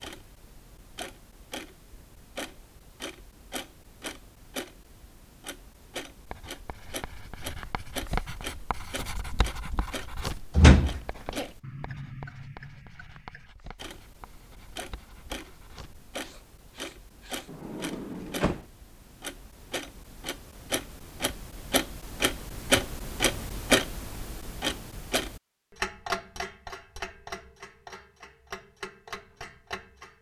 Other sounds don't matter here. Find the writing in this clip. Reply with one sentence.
You can hear the writing from 6.1 to 17.5 s.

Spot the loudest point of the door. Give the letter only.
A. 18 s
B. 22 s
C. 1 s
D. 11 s
D.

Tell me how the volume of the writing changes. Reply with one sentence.
The loudness of the writing goes down.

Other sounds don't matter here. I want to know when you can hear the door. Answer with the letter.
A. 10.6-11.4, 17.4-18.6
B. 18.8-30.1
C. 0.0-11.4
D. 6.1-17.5
A.